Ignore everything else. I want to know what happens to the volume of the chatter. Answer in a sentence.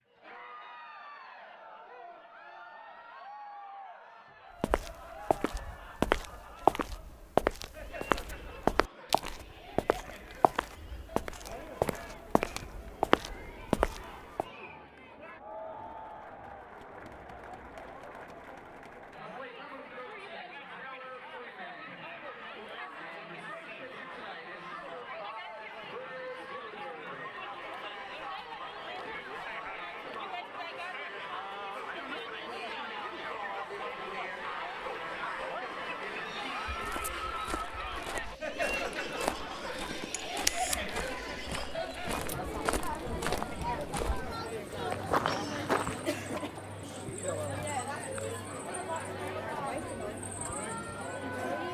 The loudness of the chatter goes up.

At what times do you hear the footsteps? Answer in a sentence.
The footsteps can be heard from 4.6 to 14.4 s and from 36.6 to 46.5 s.